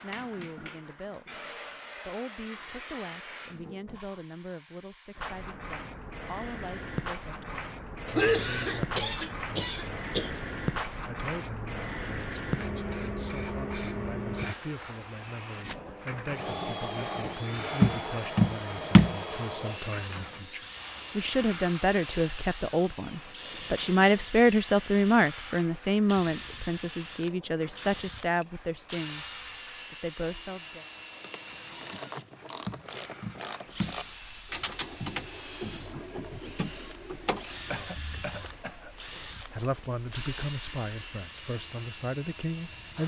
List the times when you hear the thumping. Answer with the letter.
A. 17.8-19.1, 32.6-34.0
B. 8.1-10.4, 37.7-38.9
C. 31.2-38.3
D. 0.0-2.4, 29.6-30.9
A.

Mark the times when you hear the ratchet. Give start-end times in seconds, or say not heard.
31.2-38.3.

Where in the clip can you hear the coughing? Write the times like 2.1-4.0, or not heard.
8.1-10.4, 37.7-38.9.